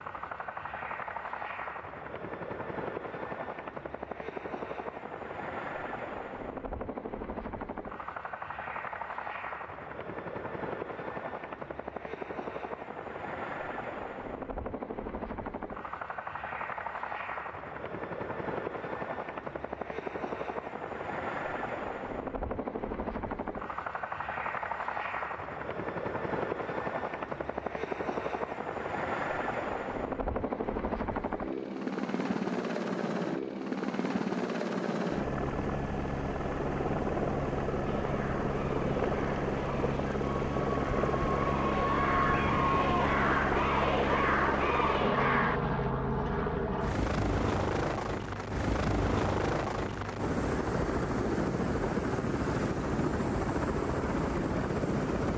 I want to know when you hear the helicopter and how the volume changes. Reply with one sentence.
You can hear the helicopter from 0.0 to 55.3 s, getting louder.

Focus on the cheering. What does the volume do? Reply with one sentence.
The loudness of the cheering goes up.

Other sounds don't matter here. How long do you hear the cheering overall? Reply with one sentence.
The cheering can be heard for 8 seconds in total.